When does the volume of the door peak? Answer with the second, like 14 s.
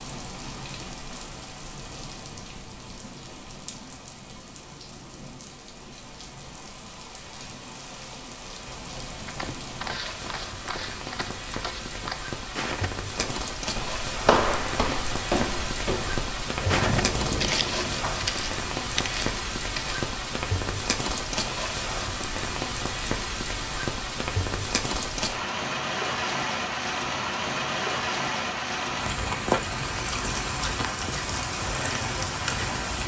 17 s.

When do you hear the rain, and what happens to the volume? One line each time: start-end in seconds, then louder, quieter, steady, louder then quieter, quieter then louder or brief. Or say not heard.
0.0-33.0 louder.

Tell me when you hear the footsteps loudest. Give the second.
14 s.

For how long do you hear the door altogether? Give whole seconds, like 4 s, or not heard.
2 s.